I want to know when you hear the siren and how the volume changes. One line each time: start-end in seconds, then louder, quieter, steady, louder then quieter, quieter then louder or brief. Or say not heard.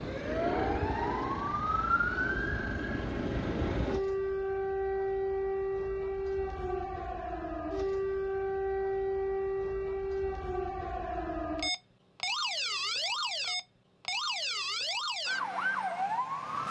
0.0-16.6 steady.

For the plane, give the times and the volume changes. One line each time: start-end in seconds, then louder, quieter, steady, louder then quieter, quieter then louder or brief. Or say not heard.
0.0-4.0 quieter then louder.